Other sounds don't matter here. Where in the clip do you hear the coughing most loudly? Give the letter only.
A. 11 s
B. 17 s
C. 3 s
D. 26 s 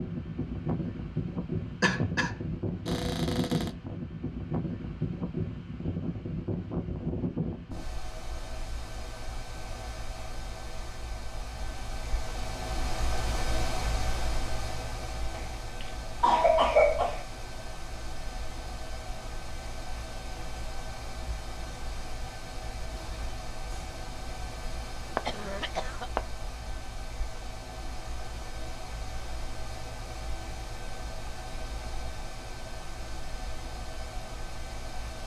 B.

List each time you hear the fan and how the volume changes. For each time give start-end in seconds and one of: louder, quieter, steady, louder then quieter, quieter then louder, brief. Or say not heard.
0.0-35.2 quieter.